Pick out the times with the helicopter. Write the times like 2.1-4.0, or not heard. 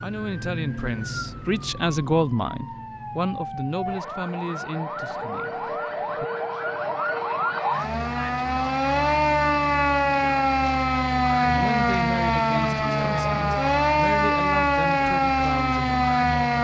not heard.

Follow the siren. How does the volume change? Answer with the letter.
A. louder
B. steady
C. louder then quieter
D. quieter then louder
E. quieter
A.